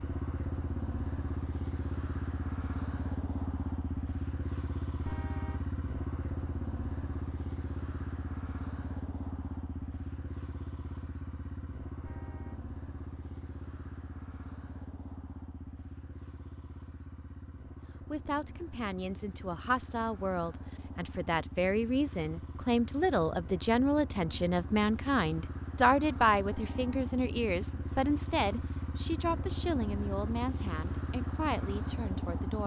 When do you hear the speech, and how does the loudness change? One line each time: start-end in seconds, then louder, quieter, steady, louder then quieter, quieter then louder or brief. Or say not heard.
18.1-32.6 louder then quieter.